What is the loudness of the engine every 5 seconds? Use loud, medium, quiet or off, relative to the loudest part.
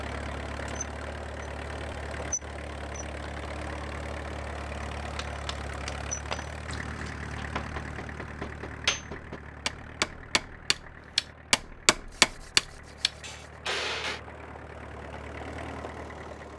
loud, loud, medium, loud.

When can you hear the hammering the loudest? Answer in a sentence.
The volume of the hammering peaks at 12 seconds.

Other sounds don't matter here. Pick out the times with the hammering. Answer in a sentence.
The hammering can be heard from 5.2 to 14.2 s.